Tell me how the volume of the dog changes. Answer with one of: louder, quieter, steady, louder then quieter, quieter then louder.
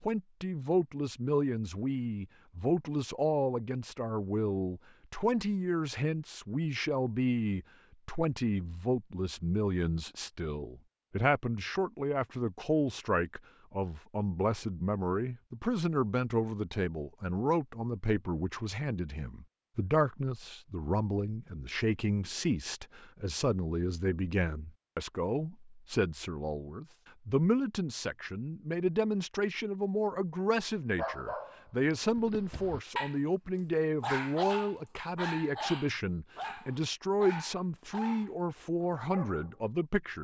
louder then quieter.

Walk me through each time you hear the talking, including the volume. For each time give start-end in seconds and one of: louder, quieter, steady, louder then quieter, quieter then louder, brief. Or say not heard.
0.0-40.2 steady.